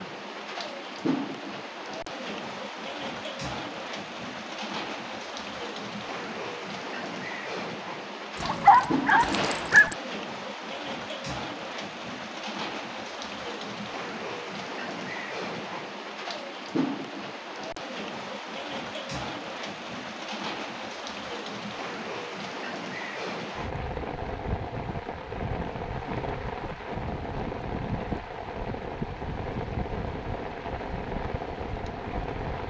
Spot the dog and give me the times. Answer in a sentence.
The dog can be heard from 8.4 to 9.9 s.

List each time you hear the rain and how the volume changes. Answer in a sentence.
You can hear the rain from 0.0 to 32.6 s, at a steady volume.